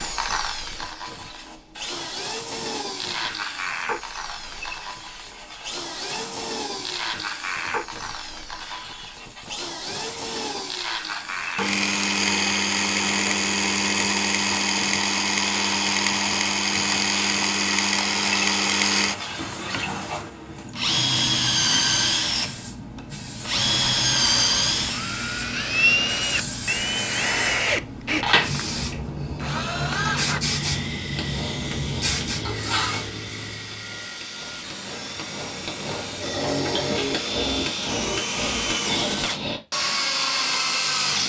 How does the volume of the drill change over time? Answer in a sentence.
The loudness of the drill goes up, then down.